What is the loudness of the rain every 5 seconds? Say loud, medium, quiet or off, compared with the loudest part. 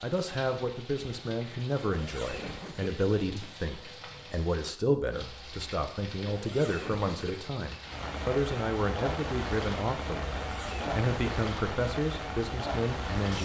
medium, loud, loud.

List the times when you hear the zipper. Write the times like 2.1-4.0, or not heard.
1.8-2.9, 6.2-7.3, 10.4-11.1.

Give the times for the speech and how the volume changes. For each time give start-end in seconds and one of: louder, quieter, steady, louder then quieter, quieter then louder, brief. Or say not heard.
0.0-13.3 steady.